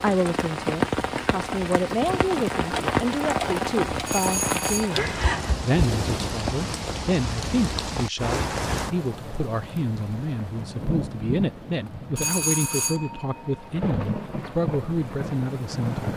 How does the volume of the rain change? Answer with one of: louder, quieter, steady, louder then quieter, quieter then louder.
quieter.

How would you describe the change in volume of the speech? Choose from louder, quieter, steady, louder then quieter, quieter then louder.
steady.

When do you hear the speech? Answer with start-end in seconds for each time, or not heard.
0.0-16.1.